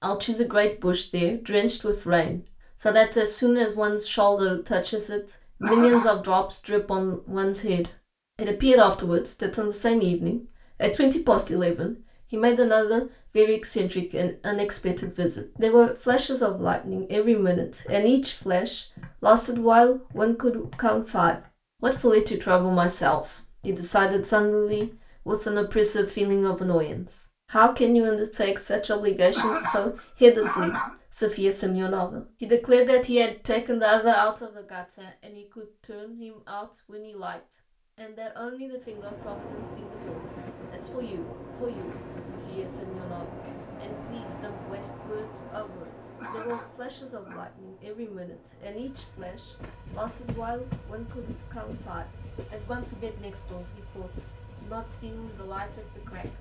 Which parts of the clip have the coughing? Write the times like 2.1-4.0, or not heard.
5.6-6.1, 29.4-30.9, 46.2-47.5.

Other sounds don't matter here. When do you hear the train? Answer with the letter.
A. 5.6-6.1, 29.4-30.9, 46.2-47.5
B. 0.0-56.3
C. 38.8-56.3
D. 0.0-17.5
C.